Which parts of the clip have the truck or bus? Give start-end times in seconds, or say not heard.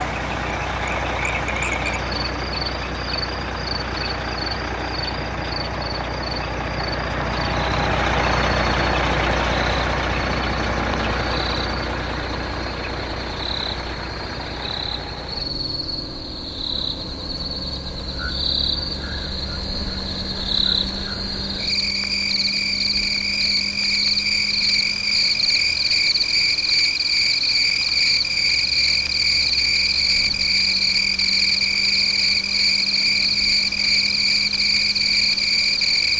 0.0-36.1.